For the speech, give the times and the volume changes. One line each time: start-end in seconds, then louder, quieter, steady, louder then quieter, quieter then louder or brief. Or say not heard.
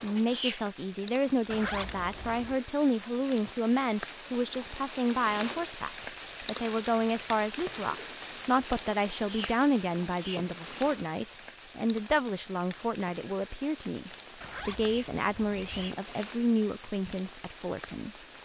0.0-18.1 steady.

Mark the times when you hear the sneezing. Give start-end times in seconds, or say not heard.
0.1-1.1, 9.1-10.5, 14.8-16.0.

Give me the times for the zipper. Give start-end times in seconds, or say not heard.
1.5-2.6, 14.4-15.9.